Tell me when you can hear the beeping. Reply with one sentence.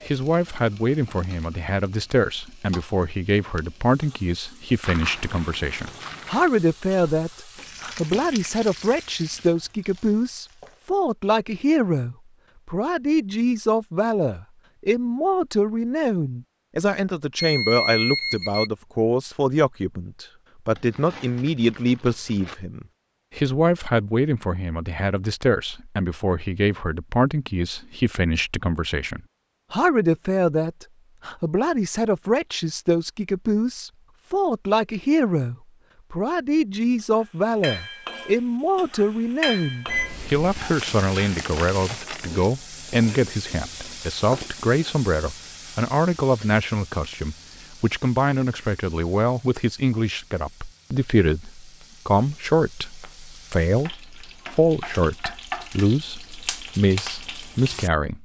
The beeping can be heard from 17.4 to 18.7 s and from 39.9 to 40.5 s.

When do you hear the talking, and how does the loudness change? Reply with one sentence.
You can hear the talking from 0.1 to 58.1 s, at a steady volume.